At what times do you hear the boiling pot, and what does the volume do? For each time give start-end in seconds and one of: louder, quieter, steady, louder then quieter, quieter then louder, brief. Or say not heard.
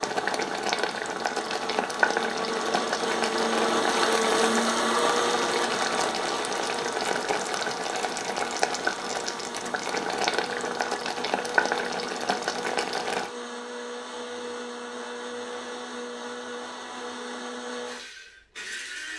0.0-13.3 steady.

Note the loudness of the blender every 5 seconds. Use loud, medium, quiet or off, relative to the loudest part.
loud, loud, medium, medium.